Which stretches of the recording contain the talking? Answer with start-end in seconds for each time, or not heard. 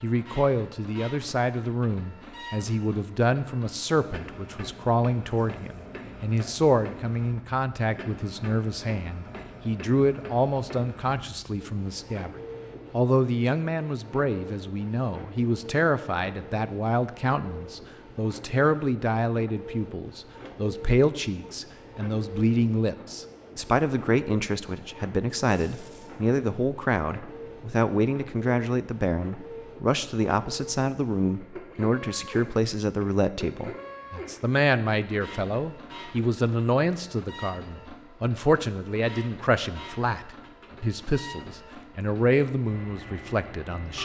0.0-12.3, 12.9-44.0.